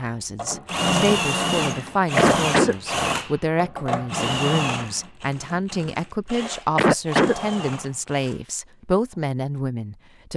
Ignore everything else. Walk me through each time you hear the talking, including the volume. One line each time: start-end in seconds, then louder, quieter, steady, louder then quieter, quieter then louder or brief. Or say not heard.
0.0-10.3 steady.